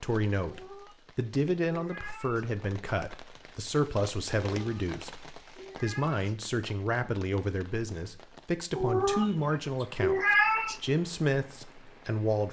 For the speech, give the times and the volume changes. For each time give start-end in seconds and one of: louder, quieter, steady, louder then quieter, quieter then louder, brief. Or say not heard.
0.0-12.4 steady.